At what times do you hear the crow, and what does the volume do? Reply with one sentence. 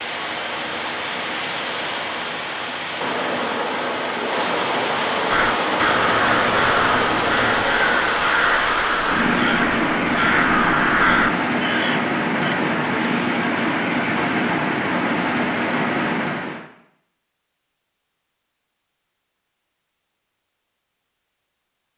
You can hear the crow from 5.3 to 12.6 s, at a steady volume.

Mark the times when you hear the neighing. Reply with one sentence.
The neighing can't be heard in this clip.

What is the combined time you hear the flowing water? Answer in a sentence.
You can hear the flowing water for 17 seconds altogether.